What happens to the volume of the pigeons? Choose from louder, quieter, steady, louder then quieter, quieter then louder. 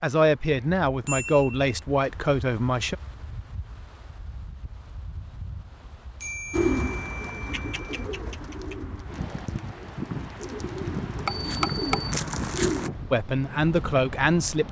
quieter then louder.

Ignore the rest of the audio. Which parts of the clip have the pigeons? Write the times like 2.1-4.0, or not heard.
6.5-12.9.